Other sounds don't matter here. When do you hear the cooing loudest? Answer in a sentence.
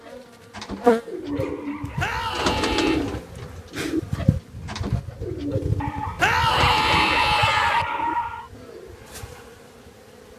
The volume of the cooing peaks at 3 seconds.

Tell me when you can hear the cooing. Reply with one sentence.
The cooing can be heard from 0.0 to 9.0 s.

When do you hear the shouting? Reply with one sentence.
You can hear the shouting from 1.9 to 3.0 s and from 6.2 to 7.8 s.